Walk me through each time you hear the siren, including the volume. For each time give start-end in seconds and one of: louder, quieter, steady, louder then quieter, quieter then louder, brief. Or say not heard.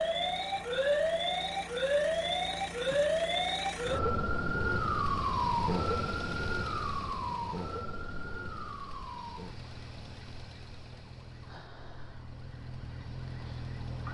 0.0-14.1 quieter.